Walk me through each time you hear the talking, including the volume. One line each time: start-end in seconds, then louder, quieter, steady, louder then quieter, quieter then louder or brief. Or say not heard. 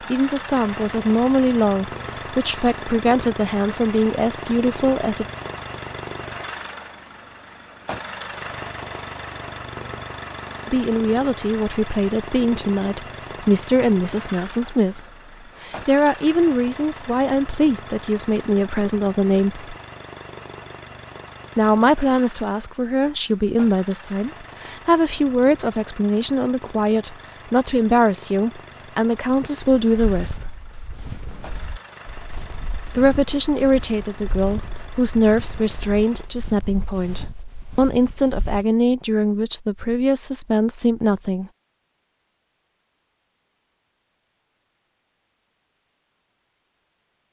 0.1-5.2 steady
10.7-19.6 steady
21.6-30.4 steady
33.0-41.5 steady.